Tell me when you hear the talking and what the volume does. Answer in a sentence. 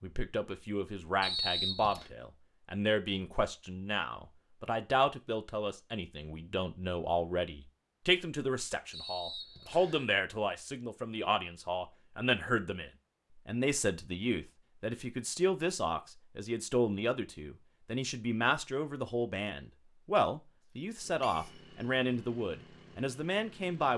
You can hear the talking from 0.0 to 23.9 s, at a steady volume.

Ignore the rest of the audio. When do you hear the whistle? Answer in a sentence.
You can hear the whistle from 1.2 to 2.1 s, from 8.9 to 10.1 s and from 21.2 to 21.6 s.